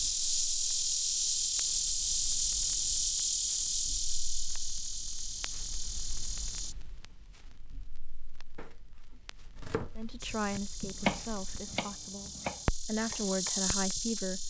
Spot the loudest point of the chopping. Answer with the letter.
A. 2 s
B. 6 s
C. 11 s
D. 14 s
C.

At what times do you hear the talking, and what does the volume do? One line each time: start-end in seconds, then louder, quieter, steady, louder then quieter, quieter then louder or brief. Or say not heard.
9.9-14.4 quieter then louder.